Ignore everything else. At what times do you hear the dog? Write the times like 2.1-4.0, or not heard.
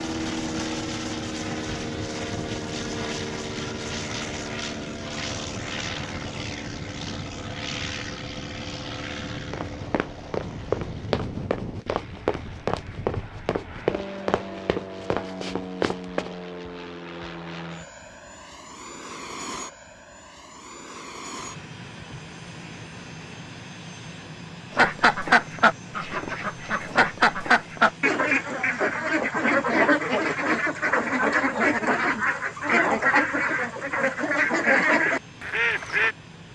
not heard.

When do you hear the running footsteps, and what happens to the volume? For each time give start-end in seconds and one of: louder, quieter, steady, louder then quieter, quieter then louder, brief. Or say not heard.
9.5-16.4 steady.